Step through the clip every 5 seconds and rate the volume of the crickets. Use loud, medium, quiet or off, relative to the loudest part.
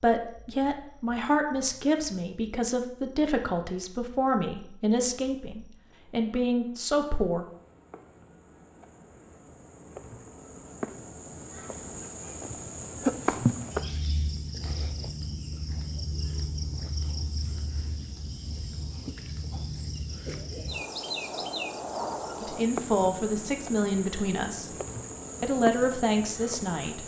quiet, quiet, loud, medium, loud, loud.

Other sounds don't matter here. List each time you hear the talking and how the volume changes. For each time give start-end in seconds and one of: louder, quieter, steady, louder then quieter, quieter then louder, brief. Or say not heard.
0.0-7.5 steady
22.4-24.7 brief
25.4-27.0 brief.